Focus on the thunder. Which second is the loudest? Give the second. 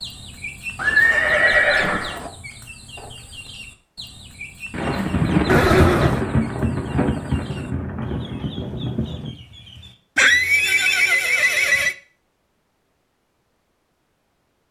5 s.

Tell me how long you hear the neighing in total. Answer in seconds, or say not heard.
4 s.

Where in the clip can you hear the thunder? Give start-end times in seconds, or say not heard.
4.7-9.3.